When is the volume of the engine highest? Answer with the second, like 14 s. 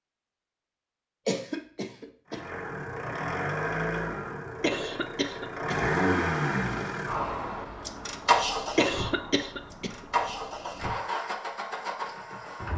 6 s.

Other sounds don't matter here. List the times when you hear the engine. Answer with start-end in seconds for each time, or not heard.
2.3-12.7.